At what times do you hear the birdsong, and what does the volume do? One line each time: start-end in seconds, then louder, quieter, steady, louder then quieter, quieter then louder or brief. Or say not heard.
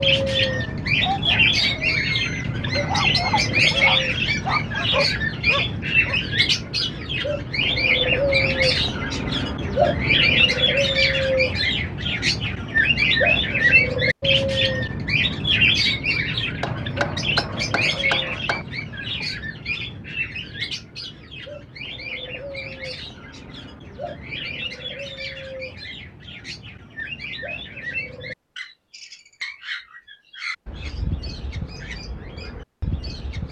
0.0-33.4 quieter.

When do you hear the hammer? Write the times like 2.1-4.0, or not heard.
16.6-18.6.